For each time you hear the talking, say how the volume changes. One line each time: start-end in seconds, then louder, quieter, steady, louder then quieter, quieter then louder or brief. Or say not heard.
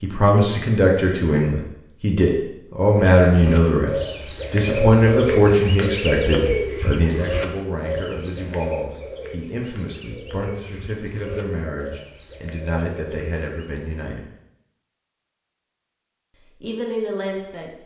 0.0-14.2 quieter
16.6-17.7 brief.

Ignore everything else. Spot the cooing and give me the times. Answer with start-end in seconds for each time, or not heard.
3.2-13.7.